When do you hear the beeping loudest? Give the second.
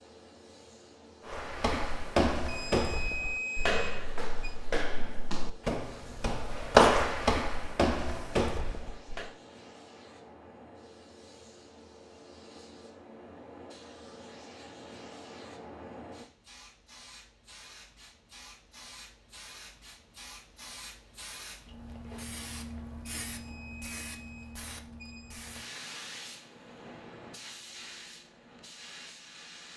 3 s.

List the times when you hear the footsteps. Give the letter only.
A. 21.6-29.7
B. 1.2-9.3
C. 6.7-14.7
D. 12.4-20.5
B.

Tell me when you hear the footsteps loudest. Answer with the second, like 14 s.
7 s.